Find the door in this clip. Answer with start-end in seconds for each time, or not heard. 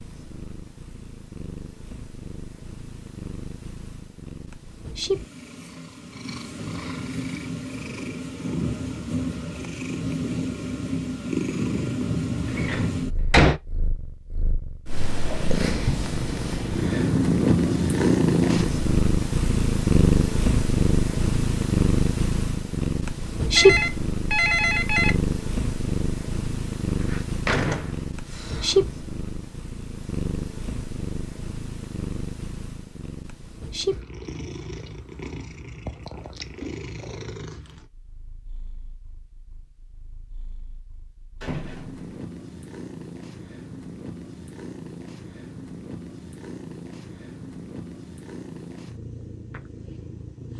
12.6-13.6, 27.1-28.7, 41.4-42.1.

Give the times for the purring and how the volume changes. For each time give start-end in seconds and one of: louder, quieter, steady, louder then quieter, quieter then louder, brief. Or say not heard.
0.0-50.5 louder then quieter.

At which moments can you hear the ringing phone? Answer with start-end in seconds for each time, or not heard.
23.6-25.1.